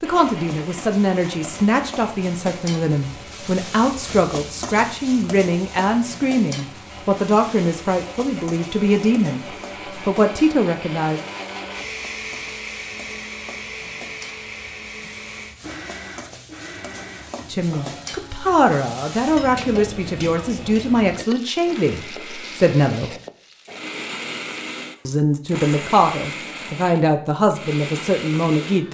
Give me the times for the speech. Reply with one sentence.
The speech can be heard from 0.0 to 11.2 s, from 17.5 to 23.1 s and from 25.1 to 28.8 s.